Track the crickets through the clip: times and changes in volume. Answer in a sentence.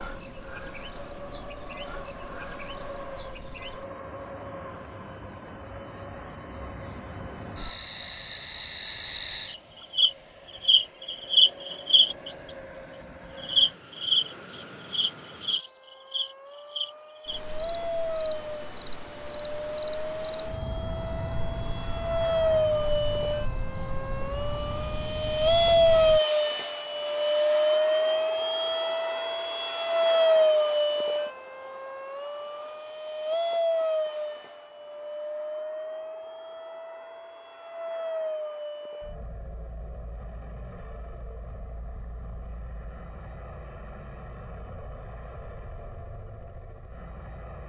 You can hear the crickets from 0.0 to 26.2 s, getting louder then quieter.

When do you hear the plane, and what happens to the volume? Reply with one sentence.
You can hear the plane from 0.0 to 47.6 s, getting louder then quieter.